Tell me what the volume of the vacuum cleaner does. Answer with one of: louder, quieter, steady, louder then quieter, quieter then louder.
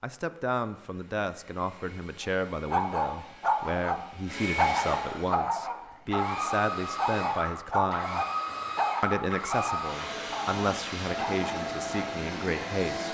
louder.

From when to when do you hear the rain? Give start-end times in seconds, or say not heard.
not heard.